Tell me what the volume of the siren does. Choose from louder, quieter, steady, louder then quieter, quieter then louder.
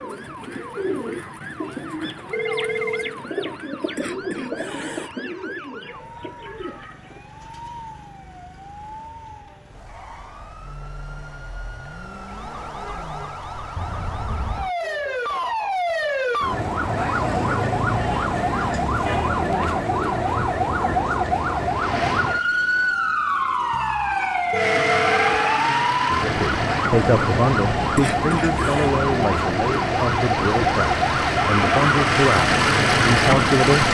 louder.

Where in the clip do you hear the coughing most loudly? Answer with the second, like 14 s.
28 s.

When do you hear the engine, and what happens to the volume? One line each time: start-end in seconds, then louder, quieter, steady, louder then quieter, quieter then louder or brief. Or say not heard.
21.6-23.0 brief
24.6-33.8 quieter then louder.